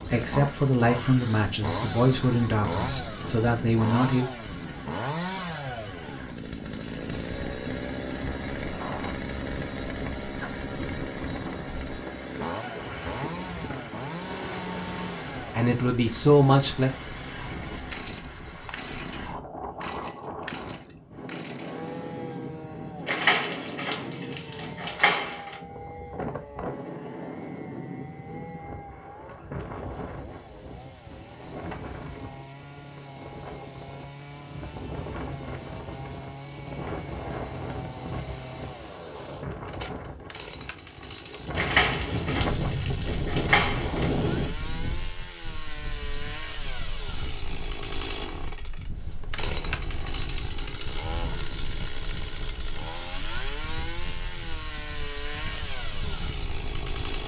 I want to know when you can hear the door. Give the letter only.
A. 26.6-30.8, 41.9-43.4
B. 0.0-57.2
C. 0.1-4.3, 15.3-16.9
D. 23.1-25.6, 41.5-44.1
D.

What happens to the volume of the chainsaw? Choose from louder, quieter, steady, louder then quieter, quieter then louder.
quieter then louder.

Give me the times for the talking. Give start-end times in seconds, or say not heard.
0.1-4.3, 15.3-16.9.